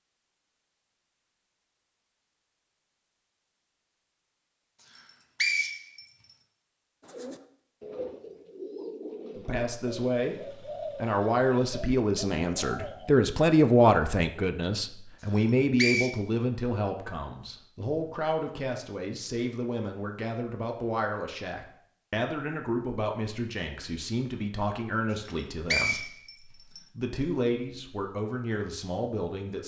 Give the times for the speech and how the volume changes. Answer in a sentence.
The speech can be heard from 9.3 to 29.6 s, getting quieter.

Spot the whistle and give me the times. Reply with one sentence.
The whistle can be heard from 5.0 to 6.0 s, from 15.3 to 16.1 s and from 25.2 to 26.8 s.